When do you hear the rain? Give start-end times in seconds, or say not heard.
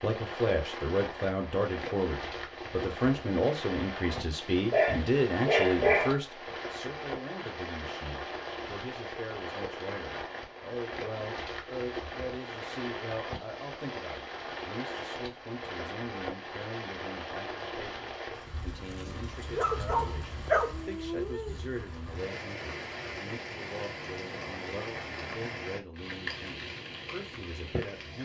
0.0-28.2.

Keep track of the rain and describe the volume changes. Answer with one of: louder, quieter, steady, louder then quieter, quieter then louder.
steady.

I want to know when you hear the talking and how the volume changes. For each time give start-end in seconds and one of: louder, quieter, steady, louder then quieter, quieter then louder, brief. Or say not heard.
0.0-28.2 quieter.